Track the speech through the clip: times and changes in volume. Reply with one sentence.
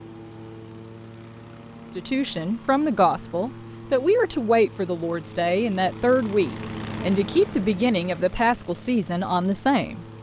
You can hear the speech from 1.9 to 10.1 s, at a steady volume.